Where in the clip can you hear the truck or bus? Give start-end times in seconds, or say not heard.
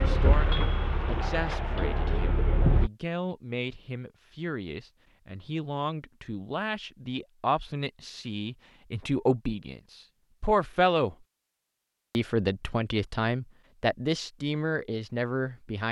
0.0-2.9.